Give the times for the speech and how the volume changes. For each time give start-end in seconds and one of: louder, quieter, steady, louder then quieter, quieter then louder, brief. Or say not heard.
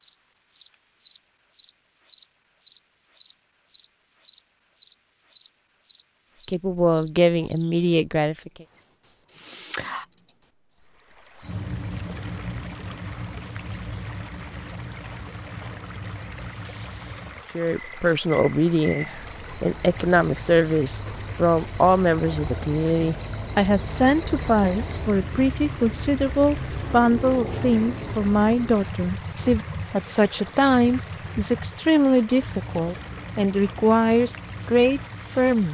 6.5-8.5 brief
17.6-35.6 steady.